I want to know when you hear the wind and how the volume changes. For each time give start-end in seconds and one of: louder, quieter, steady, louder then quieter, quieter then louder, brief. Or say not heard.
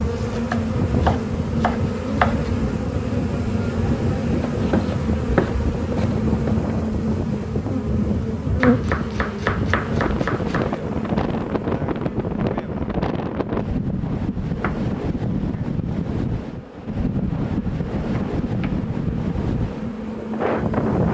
0.0-21.1 steady.